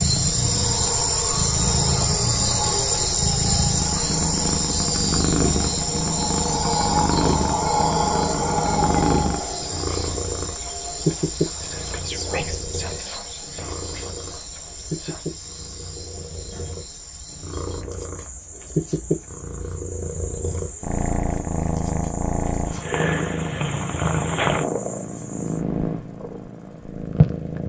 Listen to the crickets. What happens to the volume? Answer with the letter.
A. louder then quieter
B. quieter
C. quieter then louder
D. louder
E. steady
B.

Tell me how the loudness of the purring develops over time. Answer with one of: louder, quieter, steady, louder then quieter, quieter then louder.
quieter then louder.